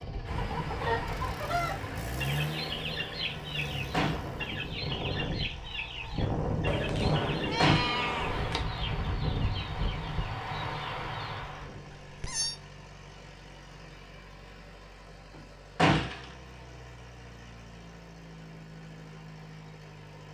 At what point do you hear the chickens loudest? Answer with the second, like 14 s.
1 s.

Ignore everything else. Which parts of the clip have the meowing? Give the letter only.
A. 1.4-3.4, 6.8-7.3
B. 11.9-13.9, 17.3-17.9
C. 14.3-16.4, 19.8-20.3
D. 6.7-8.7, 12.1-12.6
D.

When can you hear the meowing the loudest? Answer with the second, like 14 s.
8 s.